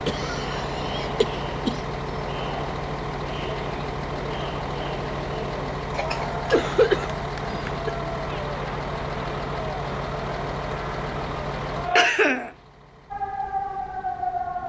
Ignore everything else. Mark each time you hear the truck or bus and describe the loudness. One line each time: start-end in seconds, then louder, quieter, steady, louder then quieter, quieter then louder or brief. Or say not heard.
0.0-14.6 quieter.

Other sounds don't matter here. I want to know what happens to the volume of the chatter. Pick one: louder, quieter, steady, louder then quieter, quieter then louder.
steady.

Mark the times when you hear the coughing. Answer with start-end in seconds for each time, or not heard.
0.1-1.8, 5.9-8.0, 11.9-12.5.